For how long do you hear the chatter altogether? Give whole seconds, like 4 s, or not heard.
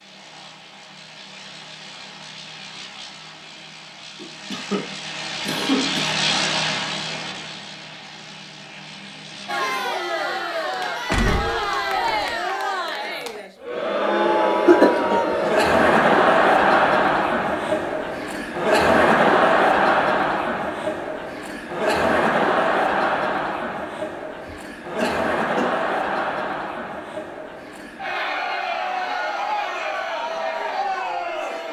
22 s.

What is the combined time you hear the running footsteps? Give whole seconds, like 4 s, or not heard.
not heard.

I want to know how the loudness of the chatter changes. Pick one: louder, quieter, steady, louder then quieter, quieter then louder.
louder then quieter.